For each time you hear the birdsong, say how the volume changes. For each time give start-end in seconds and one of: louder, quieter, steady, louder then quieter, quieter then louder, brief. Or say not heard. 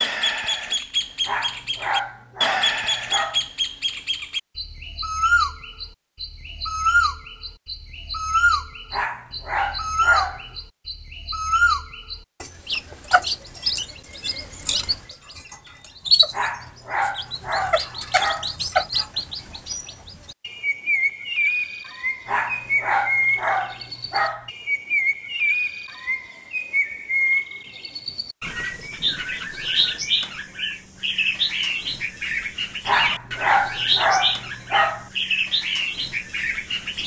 0.0-37.0 steady.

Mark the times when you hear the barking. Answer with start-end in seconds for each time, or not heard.
1.2-3.5, 8.9-10.6, 16.3-18.6, 22.2-24.5, 32.9-35.1.